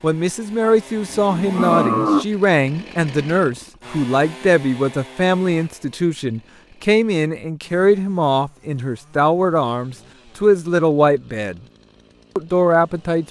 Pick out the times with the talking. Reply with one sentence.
You can hear the talking from 0.0 to 11.6 s and from 12.3 to 13.2 s.